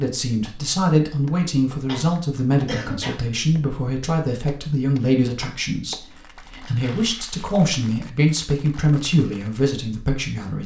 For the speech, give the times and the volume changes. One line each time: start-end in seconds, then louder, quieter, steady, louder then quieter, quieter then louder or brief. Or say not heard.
0.0-10.6 steady.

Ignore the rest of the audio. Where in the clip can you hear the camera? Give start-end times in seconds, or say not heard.
not heard.